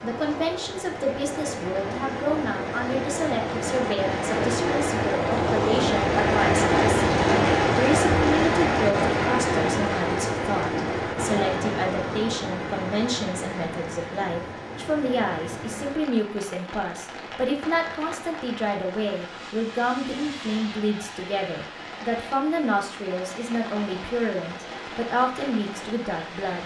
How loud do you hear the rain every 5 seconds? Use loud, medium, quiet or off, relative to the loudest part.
medium, loud, medium, quiet, quiet, quiet.